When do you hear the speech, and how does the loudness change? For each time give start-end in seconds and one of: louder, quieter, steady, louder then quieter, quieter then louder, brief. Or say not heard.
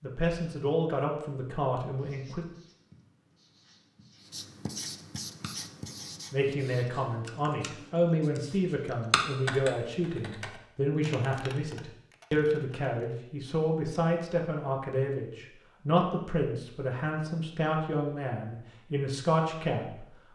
0.0-2.5 brief
6.3-20.1 steady.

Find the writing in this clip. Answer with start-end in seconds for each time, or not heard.
1.9-7.0.